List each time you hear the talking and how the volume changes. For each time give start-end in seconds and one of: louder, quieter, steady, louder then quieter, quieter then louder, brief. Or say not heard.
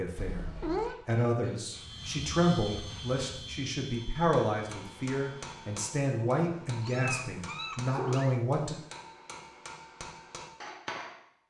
0.0-8.8 steady.